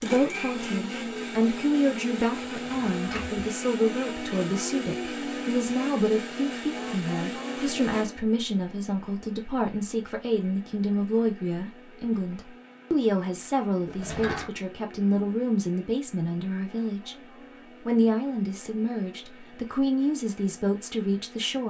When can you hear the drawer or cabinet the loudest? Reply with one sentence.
The volume of the drawer or cabinet peaks at 14 seconds.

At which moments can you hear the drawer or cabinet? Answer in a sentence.
The drawer or cabinet can be heard from 2.6 to 3.5 s and from 13.8 to 14.5 s.